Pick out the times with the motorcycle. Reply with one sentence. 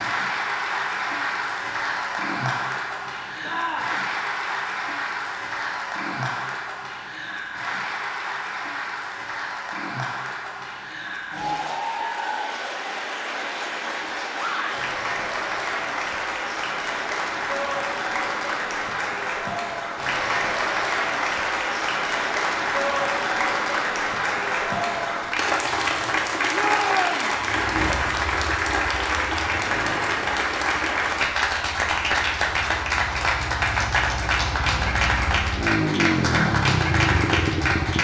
The motorcycle can be heard from 27.3 to 38.0 s.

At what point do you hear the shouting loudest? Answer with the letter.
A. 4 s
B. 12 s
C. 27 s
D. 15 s
C.